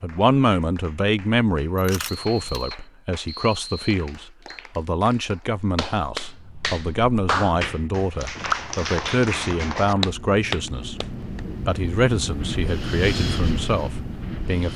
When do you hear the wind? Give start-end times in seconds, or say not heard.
6.2-14.7.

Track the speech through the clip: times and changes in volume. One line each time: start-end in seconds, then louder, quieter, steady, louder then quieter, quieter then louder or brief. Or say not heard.
0.0-14.7 steady.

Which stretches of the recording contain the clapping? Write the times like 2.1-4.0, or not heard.
0.0-11.4.